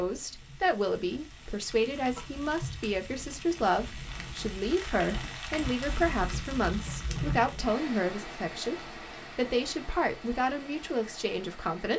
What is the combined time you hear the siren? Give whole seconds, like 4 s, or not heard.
not heard.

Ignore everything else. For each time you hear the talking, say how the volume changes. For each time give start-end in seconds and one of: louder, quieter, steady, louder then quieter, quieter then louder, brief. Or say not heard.
0.0-11.9 steady.